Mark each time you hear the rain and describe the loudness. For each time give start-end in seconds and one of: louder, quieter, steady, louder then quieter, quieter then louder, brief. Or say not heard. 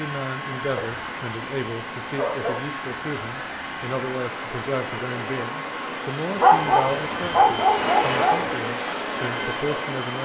0.0-10.2 louder.